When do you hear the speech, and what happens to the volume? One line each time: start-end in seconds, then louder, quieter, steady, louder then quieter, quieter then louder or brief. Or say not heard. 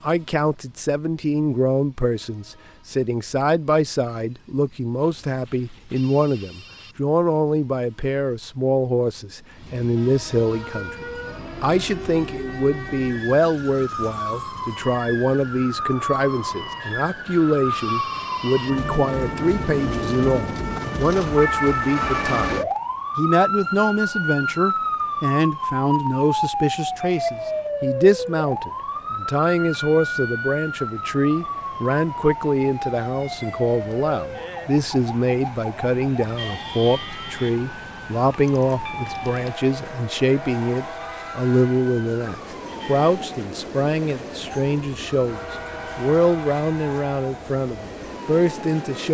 0.0-49.0 steady.